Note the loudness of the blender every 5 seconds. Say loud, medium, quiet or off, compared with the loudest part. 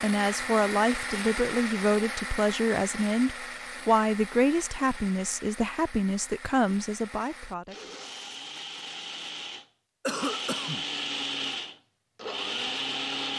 loud, medium, loud.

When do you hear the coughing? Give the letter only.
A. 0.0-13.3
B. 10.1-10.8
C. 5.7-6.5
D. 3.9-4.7
B.